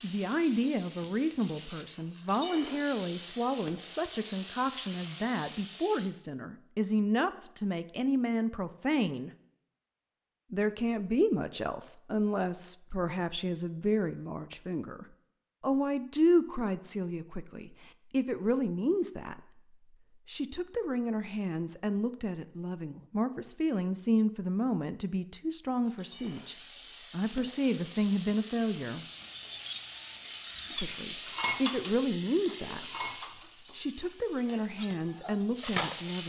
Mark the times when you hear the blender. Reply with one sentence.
You can't hear the blender here.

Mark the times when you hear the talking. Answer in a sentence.
You can hear the talking from 0.0 to 9.3 s, from 10.5 to 29.1 s and from 30.8 to 36.2 s.